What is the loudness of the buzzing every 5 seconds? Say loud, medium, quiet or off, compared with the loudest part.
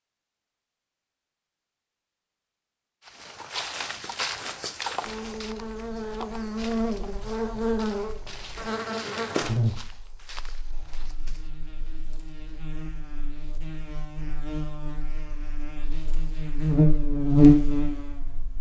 off, medium, quiet, loud.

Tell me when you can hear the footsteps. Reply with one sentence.
You can hear the footsteps from 3.0 to 11.5 s.